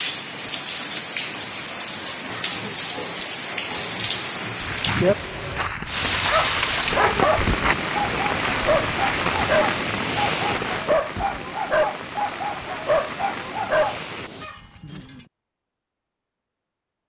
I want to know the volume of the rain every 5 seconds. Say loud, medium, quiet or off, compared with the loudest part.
medium, loud, medium, off.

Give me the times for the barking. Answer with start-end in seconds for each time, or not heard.
6.2-15.2.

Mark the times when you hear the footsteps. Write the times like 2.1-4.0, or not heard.
4.5-9.7.